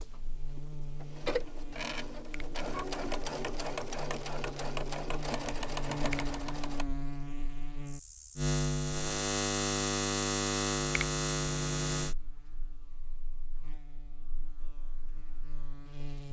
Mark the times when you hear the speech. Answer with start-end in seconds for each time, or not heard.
not heard.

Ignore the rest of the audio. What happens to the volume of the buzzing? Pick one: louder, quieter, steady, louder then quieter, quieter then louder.
louder then quieter.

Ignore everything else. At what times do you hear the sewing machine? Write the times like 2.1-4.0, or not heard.
0.0-6.8.